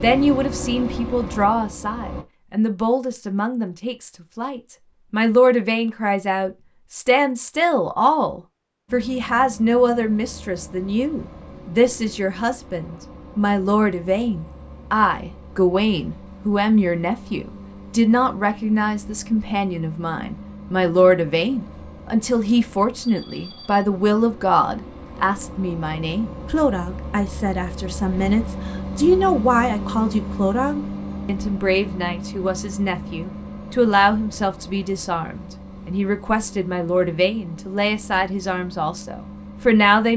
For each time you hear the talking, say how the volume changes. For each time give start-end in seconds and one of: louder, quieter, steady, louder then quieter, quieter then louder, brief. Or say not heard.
0.0-40.1 steady.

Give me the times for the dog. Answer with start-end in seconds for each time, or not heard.
not heard.